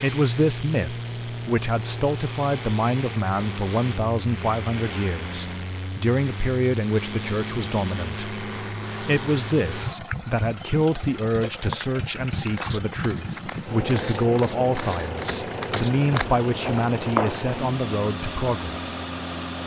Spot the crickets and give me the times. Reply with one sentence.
The crickets can't be heard in this clip.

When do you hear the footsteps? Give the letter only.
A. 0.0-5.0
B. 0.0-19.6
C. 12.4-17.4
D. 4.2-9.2
C.